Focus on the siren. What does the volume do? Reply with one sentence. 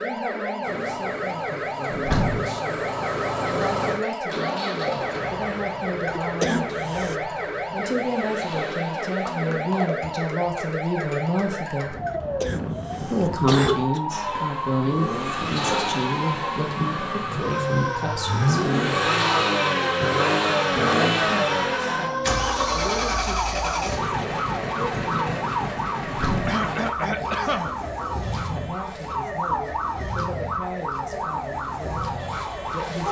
The loudness of the siren stays about the same.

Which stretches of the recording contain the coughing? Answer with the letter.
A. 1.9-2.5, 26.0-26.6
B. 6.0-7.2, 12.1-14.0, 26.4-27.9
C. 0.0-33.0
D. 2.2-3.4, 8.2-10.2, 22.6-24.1
B.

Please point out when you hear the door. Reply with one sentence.
The door can be heard from 1.9 to 2.5 s and from 26.0 to 26.6 s.